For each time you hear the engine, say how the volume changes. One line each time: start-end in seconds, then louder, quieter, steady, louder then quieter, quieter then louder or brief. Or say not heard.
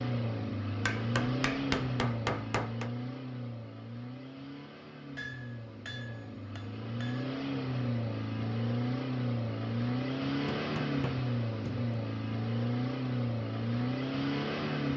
0.0-14.9 quieter then louder.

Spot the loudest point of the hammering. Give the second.
2 s.